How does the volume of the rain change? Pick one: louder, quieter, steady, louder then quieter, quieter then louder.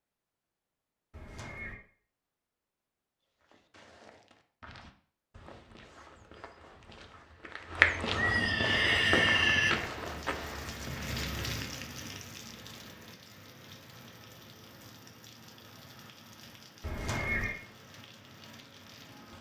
quieter.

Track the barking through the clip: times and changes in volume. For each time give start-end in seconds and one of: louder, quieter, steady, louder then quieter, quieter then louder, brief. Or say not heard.
not heard.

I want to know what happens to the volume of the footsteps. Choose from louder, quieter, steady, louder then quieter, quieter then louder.
louder then quieter.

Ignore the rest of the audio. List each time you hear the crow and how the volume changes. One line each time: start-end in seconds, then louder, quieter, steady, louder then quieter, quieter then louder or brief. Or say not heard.
not heard.